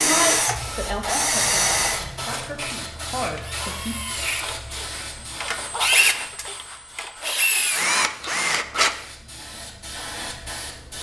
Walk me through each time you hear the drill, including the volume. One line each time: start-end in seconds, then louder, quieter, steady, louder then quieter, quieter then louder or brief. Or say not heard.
0.0-8.9 quieter then louder.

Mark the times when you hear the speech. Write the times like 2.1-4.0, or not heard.
0.0-4.0.